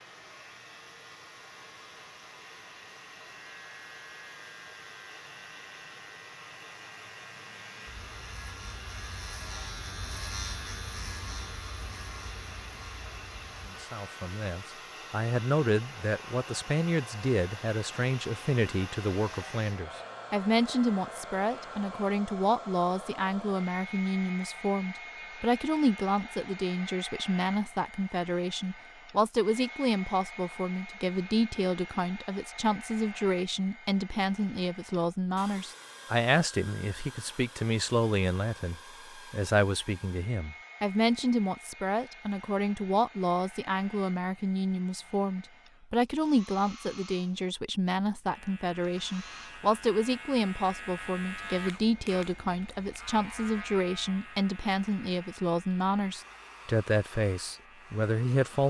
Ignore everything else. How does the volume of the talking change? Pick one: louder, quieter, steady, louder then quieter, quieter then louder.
steady.